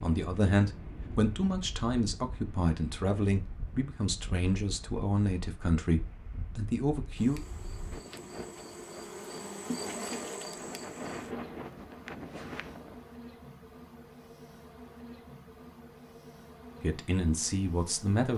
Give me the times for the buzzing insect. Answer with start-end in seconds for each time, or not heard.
7.2-18.3.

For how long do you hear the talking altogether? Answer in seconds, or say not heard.
9 s.